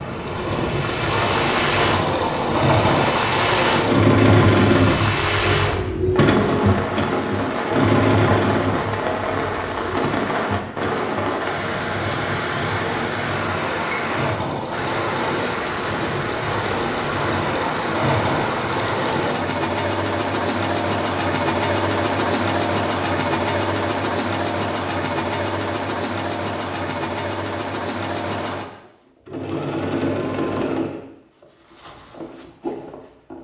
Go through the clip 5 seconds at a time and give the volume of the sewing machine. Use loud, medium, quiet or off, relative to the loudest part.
loud, loud, medium, medium, loud, medium, medium.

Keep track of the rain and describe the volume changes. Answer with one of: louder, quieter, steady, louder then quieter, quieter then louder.
steady.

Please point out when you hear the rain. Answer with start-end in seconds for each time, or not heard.
0.0-19.4.